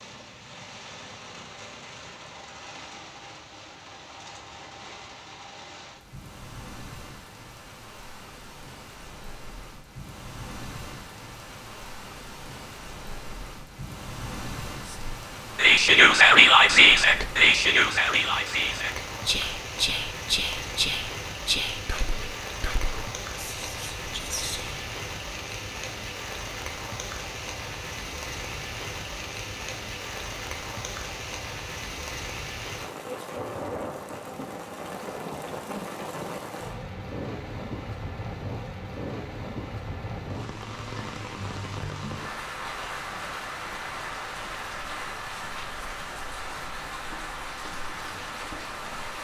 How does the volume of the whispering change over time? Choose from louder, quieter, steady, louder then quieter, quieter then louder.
quieter.